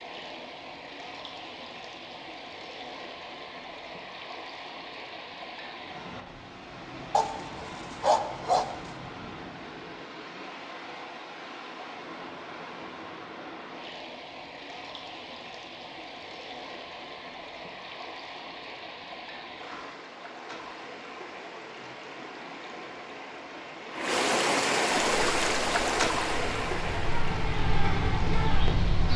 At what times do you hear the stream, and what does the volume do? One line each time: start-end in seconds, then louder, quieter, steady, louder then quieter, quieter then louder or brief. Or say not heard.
0.0-29.1 louder.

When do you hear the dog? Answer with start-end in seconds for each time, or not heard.
7.1-8.7.